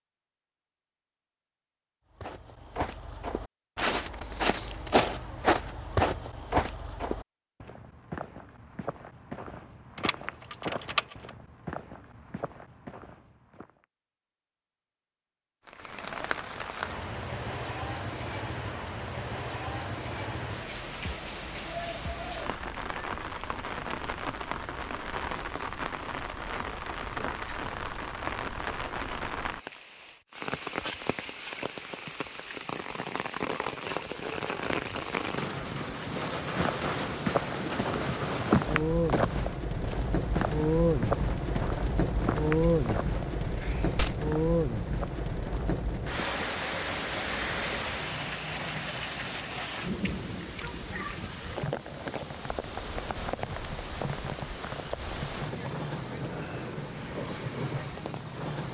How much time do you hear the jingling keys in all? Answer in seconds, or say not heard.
3 s.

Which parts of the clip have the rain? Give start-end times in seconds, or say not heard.
15.7-58.6.